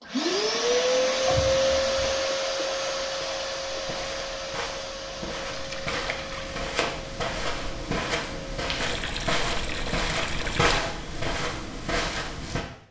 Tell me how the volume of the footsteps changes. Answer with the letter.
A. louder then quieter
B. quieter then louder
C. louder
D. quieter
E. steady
C.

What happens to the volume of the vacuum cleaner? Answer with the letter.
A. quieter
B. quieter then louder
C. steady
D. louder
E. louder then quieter
A.